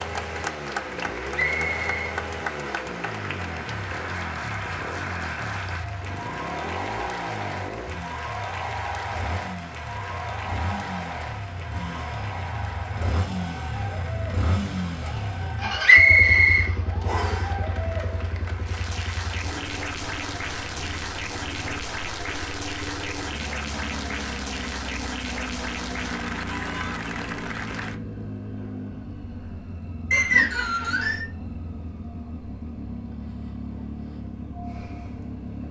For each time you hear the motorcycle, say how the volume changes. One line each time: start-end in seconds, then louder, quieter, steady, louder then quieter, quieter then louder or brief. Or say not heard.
0.0-35.6 steady.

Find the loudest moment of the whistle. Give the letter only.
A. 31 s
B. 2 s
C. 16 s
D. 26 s
C.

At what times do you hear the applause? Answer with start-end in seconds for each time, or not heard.
0.0-28.0.